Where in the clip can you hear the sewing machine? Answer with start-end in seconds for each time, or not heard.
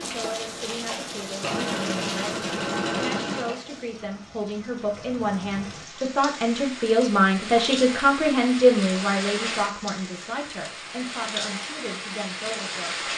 0.0-3.5.